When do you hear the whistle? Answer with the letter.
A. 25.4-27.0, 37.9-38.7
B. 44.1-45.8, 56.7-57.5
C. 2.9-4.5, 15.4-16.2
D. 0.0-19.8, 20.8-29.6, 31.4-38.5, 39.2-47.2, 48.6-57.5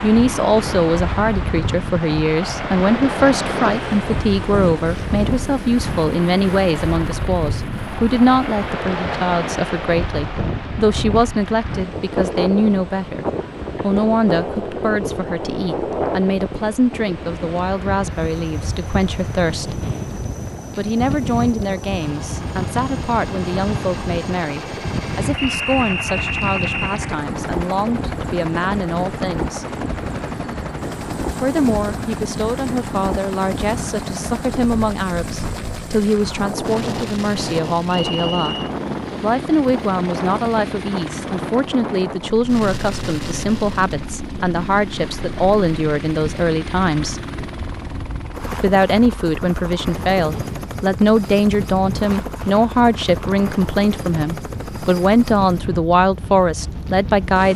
A.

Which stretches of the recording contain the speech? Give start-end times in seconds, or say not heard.
0.0-19.8, 20.8-29.6, 31.4-38.5, 39.2-47.2, 48.6-57.5.